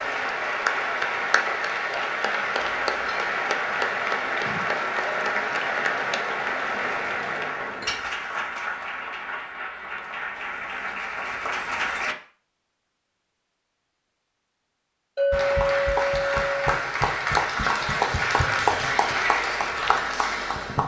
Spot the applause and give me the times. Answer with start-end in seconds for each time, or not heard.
0.0-12.2, 15.3-20.8.